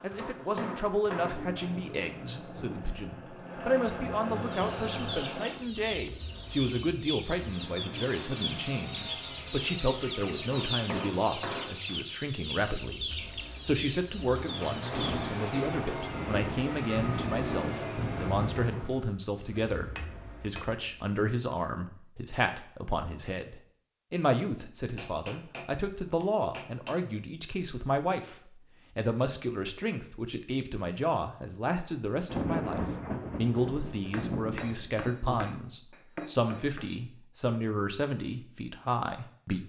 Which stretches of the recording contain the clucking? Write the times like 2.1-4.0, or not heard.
4.3-15.8.